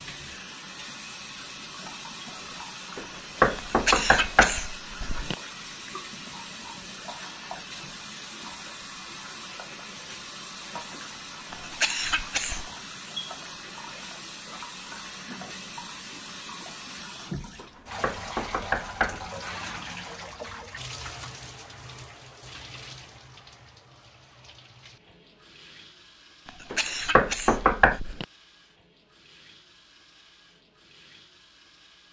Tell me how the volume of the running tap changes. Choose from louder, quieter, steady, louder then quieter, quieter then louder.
quieter.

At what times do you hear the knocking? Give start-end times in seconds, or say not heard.
3.0-4.7, 17.6-19.2, 26.7-28.0.